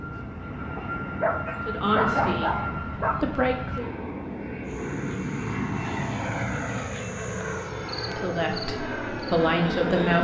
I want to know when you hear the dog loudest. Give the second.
2 s.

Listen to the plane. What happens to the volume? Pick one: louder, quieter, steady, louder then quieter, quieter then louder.
steady.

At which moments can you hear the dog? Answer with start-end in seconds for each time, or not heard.
0.8-3.1.